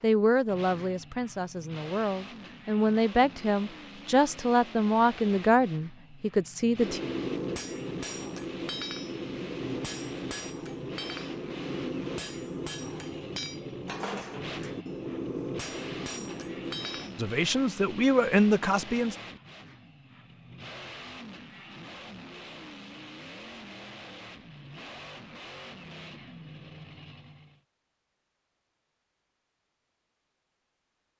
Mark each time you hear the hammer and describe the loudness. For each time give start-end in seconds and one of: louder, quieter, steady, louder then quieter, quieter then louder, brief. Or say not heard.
6.8-17.2 steady.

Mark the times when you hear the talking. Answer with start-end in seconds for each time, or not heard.
0.0-7.0, 17.1-19.1.